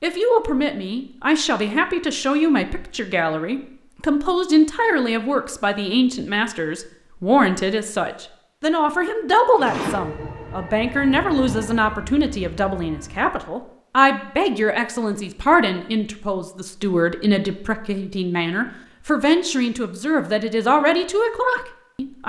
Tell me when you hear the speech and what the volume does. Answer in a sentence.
The speech can be heard from 0.0 to 22.2 s, at a steady volume.